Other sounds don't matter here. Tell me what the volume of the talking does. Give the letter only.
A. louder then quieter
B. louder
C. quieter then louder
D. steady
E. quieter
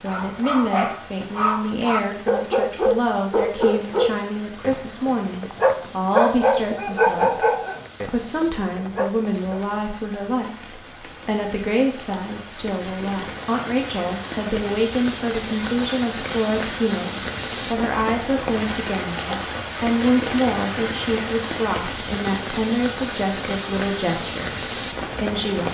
D.